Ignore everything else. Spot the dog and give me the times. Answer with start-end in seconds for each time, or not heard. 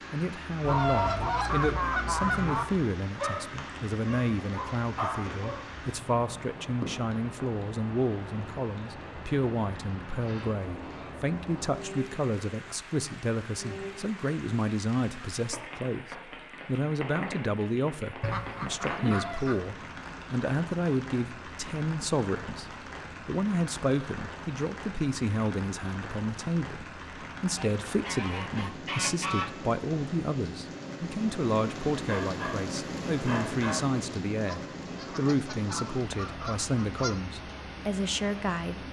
3.1-5.6, 31.9-33.9.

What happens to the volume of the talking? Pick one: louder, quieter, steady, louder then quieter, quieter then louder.
steady.